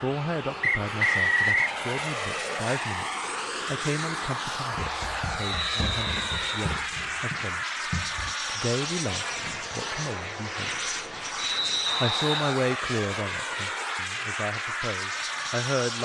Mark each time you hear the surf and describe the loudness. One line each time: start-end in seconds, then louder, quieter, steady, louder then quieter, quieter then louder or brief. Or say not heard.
not heard.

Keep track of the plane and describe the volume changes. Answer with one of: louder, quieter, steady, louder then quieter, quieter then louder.
steady.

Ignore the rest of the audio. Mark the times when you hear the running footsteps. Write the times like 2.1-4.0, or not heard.
4.7-8.3.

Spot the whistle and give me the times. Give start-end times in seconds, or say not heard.
0.6-1.8, 5.4-6.5, 11.3-12.6.